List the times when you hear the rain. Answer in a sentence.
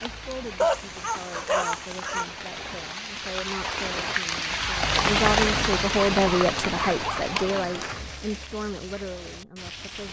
You can hear the rain from 0.0 to 10.0 s.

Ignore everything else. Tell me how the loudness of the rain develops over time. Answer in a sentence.
The volume of the rain goes up, then down.